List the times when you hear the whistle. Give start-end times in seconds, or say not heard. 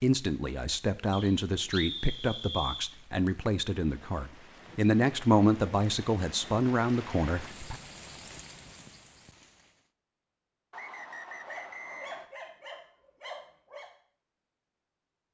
1.1-3.0, 10.7-12.3.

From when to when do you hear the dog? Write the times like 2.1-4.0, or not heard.
11.4-13.9.